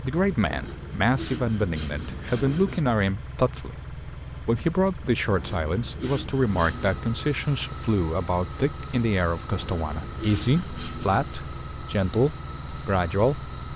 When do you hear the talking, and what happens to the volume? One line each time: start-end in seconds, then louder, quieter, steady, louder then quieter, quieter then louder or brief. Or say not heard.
0.0-13.7 steady.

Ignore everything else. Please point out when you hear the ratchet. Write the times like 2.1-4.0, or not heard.
not heard.